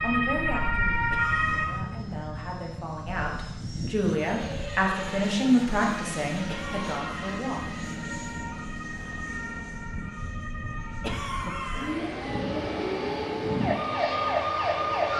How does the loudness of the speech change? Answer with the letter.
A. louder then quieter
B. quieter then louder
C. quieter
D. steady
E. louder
A.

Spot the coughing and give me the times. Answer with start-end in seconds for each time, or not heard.
1.1-1.9, 6.5-7.7, 11.0-12.4.